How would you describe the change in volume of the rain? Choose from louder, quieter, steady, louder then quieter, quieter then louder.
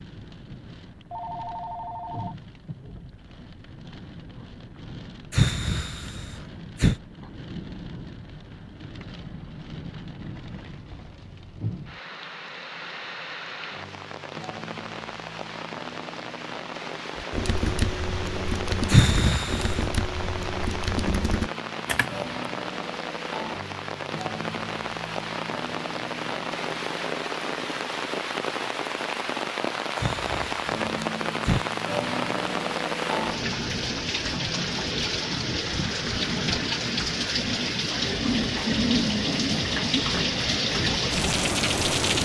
louder.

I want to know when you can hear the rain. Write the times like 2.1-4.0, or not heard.
0.0-42.1.